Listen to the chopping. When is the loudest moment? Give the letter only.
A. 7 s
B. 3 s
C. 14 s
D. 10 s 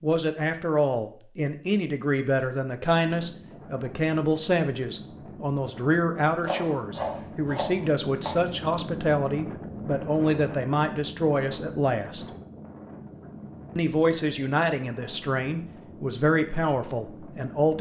A.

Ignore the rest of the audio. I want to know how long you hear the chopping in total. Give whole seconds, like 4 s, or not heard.
2 s.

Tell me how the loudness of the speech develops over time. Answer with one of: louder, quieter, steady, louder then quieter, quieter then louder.
steady.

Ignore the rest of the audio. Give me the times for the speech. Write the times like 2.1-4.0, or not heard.
0.0-12.2, 13.8-17.7.